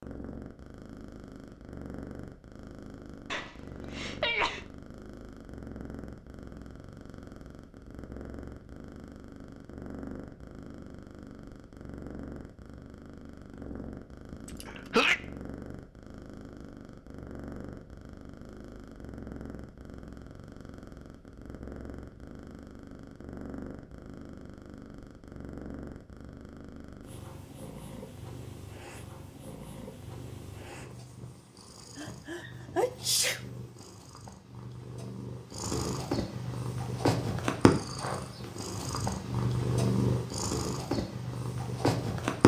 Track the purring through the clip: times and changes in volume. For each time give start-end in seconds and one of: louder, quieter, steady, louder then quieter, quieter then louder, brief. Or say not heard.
0.0-42.4 louder.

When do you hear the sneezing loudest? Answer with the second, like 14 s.
15 s.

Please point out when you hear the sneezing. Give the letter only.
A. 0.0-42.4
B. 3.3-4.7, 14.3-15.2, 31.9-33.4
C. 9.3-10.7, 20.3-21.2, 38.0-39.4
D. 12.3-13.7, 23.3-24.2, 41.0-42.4
B.